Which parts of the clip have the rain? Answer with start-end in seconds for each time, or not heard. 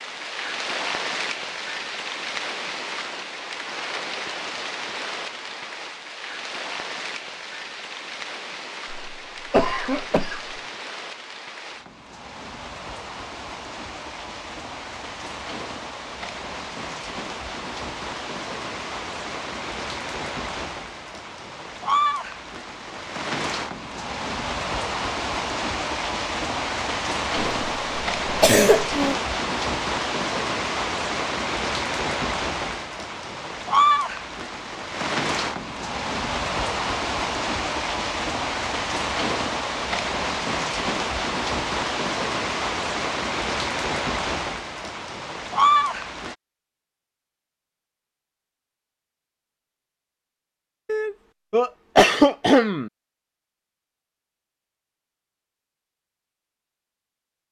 0.0-46.4.